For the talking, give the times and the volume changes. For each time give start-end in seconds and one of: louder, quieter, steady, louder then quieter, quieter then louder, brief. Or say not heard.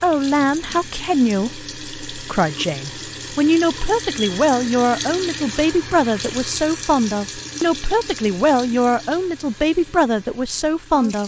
0.0-11.2 steady.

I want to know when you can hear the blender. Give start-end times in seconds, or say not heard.
not heard.